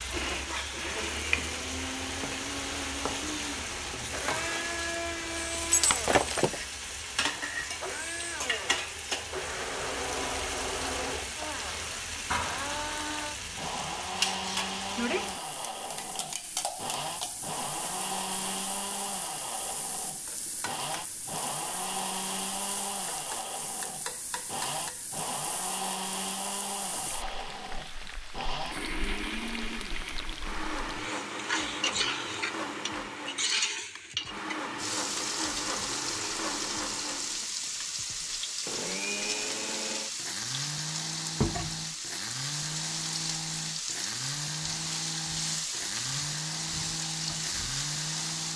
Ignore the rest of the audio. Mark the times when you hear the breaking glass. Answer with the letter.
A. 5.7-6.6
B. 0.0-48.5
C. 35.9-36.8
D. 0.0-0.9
A.